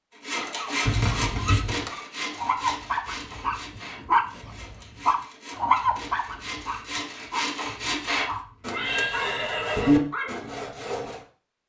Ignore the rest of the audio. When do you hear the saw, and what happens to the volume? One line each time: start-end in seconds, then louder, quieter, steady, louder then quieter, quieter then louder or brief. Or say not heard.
0.1-11.2 quieter then louder.